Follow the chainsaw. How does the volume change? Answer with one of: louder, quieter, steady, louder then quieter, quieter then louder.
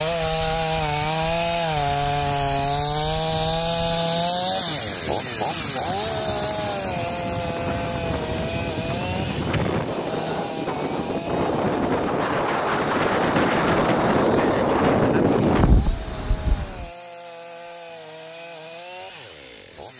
quieter.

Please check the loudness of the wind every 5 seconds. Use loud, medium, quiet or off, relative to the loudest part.
quiet, medium, loud, loud.